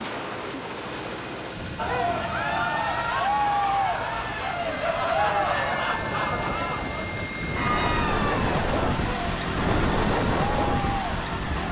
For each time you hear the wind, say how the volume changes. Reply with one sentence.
The wind can be heard from 0.0 to 11.6 s, getting quieter then louder.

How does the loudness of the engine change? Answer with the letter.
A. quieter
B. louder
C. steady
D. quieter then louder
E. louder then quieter
B.